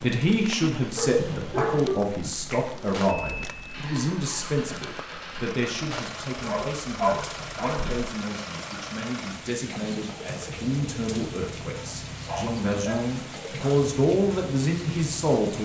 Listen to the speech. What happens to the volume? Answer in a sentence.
The loudness of the speech goes down, then up.